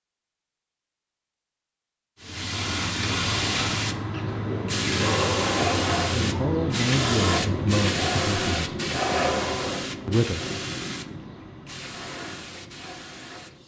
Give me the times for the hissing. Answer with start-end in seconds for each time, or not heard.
2.2-13.6.